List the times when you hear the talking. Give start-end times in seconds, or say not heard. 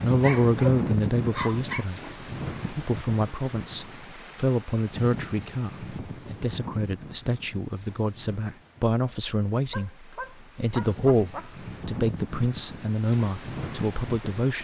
0.0-2.1, 2.7-14.5.